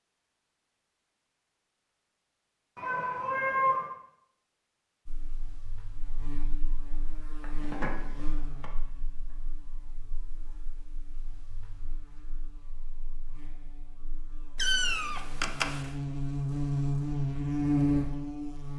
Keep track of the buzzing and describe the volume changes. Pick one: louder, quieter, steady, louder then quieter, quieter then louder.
quieter then louder.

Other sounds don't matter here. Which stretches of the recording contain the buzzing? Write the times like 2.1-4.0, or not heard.
5.0-18.7.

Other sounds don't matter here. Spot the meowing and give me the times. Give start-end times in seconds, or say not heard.
2.8-3.9, 7.4-8.7, 14.6-15.8.